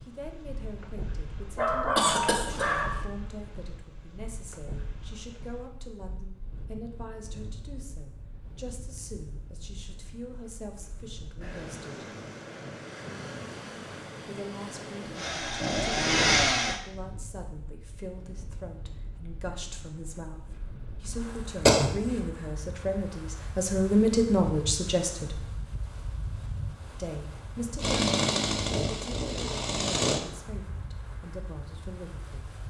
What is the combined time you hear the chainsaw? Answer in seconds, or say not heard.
4 s.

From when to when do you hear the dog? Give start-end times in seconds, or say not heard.
1.4-3.0.